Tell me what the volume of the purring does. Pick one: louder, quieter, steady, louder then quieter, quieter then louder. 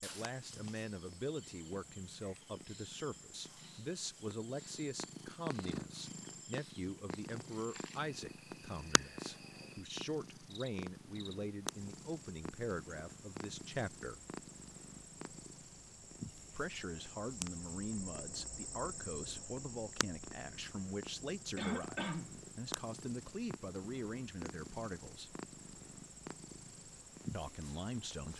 steady.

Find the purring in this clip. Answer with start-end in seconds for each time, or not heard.
0.0-28.3.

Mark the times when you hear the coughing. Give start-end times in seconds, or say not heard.
21.6-22.4.